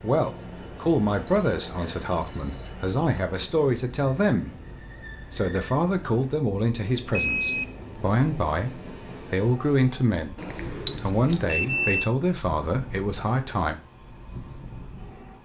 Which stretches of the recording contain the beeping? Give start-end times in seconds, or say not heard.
1.3-3.2, 7.1-7.7, 10.3-12.1.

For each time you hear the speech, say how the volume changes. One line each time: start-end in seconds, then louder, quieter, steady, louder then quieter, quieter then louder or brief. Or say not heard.
0.0-13.8 steady.